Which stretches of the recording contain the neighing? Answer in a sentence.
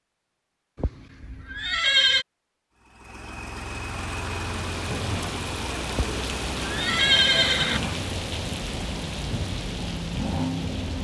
The neighing can be heard from 0.8 to 2.2 s and from 6.0 to 7.8 s.